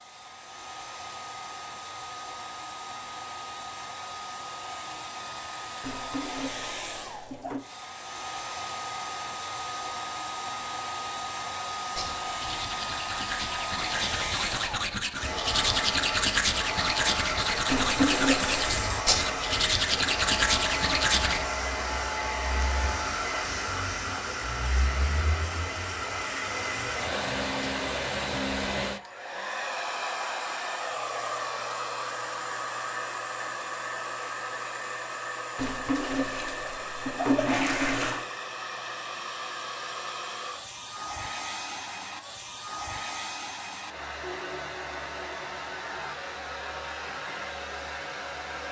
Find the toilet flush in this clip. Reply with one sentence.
You can hear the toilet flush from 5.8 to 7.7 s, from 17.6 to 18.9 s and from 35.5 to 38.2 s.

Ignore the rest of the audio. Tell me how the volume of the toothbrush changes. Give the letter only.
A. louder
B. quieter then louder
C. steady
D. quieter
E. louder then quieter
A.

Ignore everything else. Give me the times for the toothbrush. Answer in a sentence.
The toothbrush can be heard from 11.5 to 21.4 s.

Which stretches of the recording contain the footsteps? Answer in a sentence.
You can't hear the footsteps here.